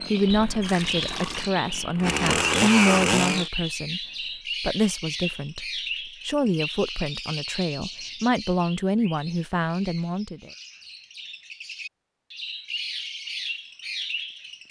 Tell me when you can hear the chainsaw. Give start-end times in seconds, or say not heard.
0.0-3.5.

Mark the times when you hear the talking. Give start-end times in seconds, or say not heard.
0.0-4.0, 4.6-10.5.